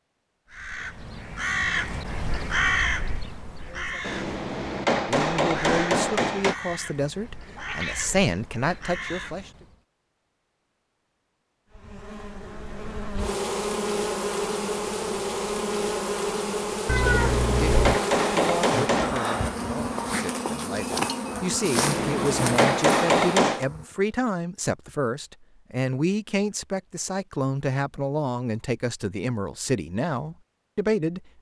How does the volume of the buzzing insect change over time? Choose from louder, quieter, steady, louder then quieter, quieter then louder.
steady.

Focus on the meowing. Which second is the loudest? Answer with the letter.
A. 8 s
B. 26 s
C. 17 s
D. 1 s
C.